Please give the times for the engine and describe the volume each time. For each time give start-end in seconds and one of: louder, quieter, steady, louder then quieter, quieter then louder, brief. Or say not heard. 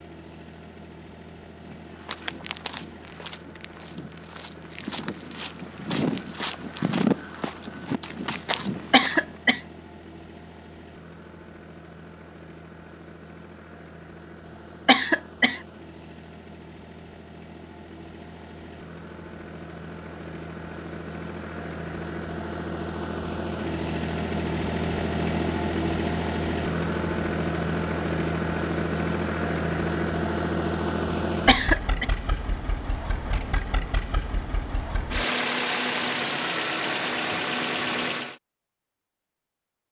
0.0-38.4 louder.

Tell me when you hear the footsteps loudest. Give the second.
7 s.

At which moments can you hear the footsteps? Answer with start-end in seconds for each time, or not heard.
1.6-9.3.